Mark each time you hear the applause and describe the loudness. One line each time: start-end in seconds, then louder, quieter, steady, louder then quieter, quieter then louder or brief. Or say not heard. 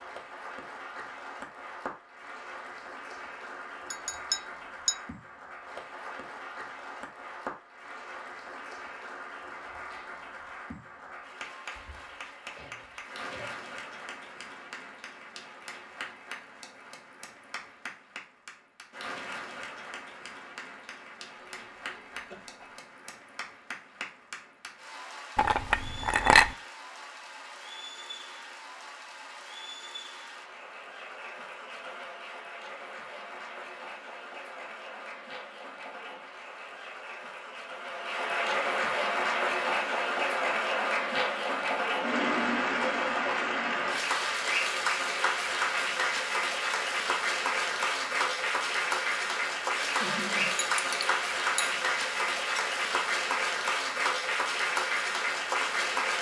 0.0-56.1 louder.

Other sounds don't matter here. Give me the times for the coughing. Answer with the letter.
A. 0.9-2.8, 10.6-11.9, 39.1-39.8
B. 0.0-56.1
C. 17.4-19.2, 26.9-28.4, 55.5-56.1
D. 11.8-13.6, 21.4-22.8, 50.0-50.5
D.